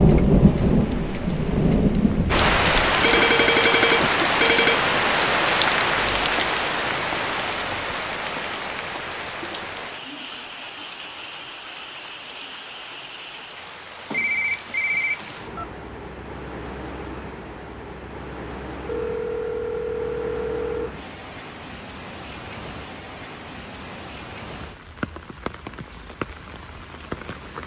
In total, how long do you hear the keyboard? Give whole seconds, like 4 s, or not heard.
not heard.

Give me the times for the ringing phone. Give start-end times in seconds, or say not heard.
3.0-4.8, 14.1-15.7, 18.9-20.9.